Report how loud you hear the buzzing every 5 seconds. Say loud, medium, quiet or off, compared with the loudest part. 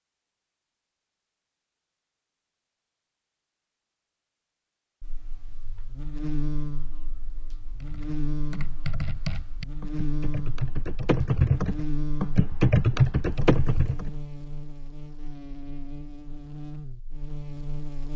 off, loud, loud, loud.